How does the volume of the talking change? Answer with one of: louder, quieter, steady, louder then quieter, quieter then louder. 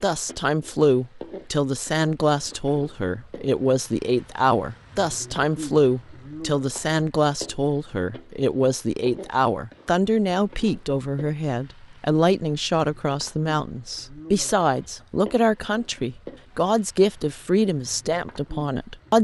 steady.